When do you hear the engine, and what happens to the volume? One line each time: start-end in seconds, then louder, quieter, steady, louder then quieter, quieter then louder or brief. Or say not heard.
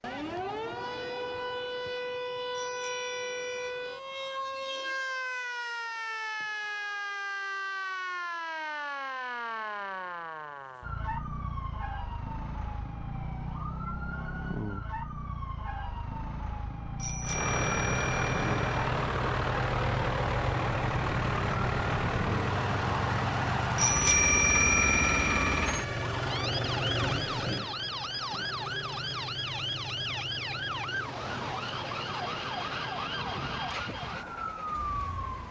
17.2-35.4 quieter.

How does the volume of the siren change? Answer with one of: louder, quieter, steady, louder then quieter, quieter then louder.
steady.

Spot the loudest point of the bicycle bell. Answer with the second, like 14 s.
24 s.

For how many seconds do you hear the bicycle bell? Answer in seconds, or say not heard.
5 s.